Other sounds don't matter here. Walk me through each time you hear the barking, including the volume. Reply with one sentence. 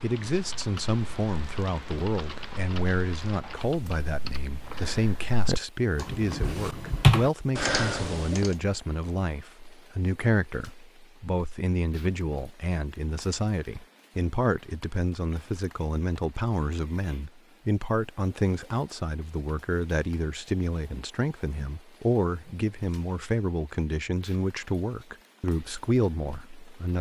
The barking can't be heard in this clip.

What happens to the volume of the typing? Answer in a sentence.
The loudness of the typing goes up.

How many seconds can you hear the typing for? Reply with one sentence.
The typing can be heard for 8 seconds in total.